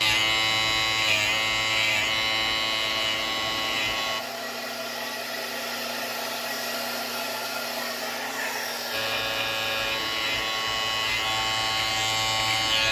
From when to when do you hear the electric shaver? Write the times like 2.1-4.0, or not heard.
0.0-4.2, 8.9-12.8.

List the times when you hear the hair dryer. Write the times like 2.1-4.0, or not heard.
0.0-12.8.